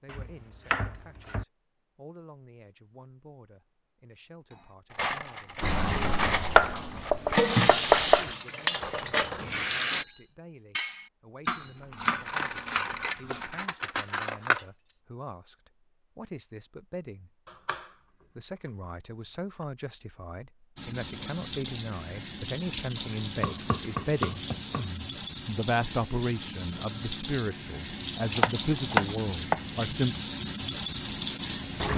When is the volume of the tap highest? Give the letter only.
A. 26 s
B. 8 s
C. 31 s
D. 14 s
B.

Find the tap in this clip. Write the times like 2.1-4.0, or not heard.
5.6-10.1, 20.8-31.9.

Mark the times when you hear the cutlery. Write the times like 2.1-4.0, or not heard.
5.0-14.8.